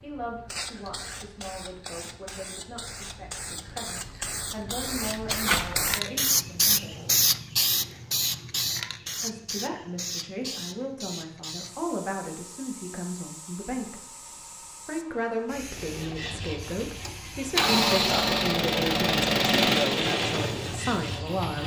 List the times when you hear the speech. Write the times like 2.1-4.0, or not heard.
0.0-7.1, 9.2-14.1, 14.8-21.6.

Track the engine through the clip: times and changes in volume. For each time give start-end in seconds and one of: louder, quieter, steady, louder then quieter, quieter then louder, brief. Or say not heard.
15.7-21.6 louder then quieter.